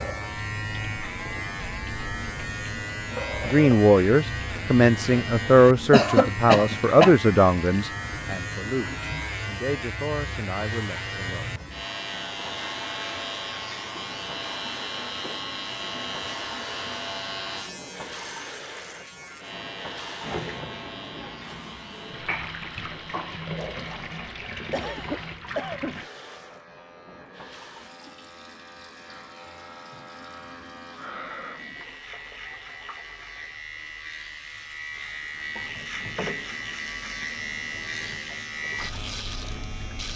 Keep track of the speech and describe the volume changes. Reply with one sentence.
The loudness of the speech goes down.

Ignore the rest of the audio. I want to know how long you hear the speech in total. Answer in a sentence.
The speech can be heard for 8 seconds in total.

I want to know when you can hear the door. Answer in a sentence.
The door can't be heard in this clip.